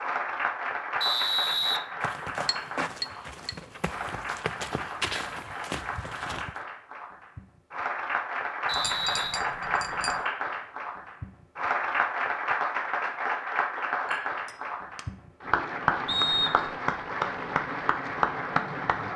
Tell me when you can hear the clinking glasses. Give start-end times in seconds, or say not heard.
2.5-3.5, 8.7-10.2, 14.1-15.1.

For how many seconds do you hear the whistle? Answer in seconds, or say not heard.
3 s.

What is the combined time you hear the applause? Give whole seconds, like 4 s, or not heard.
19 s.